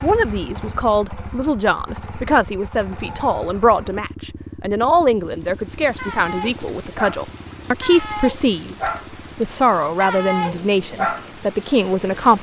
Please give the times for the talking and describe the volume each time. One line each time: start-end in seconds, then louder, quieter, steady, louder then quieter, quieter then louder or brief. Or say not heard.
0.0-12.3 steady.